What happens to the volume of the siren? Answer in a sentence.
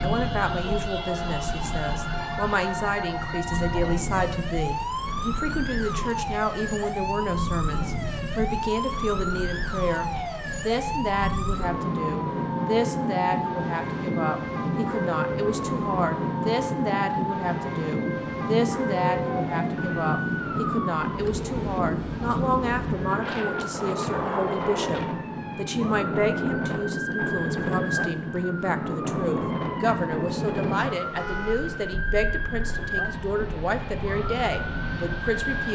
The volume of the siren stays about the same.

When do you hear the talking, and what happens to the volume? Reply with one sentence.
The talking can be heard from 0.0 to 35.6 s, at a steady volume.